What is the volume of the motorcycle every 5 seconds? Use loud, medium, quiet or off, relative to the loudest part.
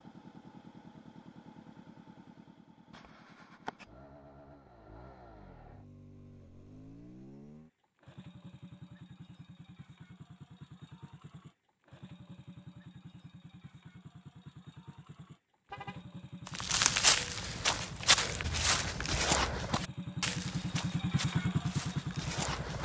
quiet, quiet, quiet, quiet, loud.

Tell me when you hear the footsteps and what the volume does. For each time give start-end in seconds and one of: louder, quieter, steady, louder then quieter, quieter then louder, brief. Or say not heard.
16.4-22.8 quieter.